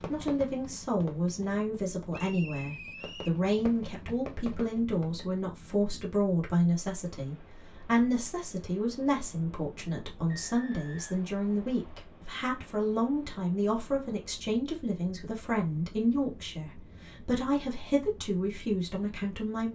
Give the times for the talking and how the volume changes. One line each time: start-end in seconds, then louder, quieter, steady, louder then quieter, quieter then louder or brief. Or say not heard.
0.1-19.7 steady.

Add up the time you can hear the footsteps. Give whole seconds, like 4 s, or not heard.
not heard.